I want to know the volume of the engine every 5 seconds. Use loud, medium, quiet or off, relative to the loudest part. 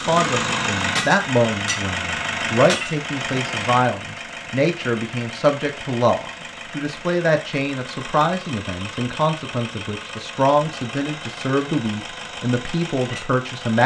loud, medium, medium.